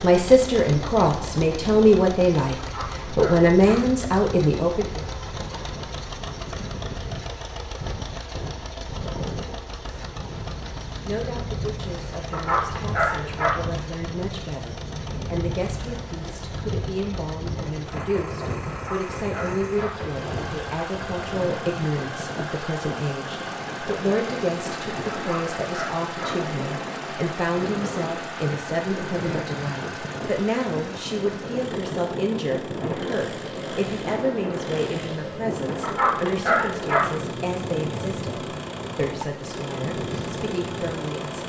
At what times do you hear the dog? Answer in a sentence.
You can hear the dog from 2.5 to 3.9 s, from 12.3 to 13.6 s, from 18.7 to 20.0 s, from 25.1 to 26.4 s and from 35.8 to 37.1 s.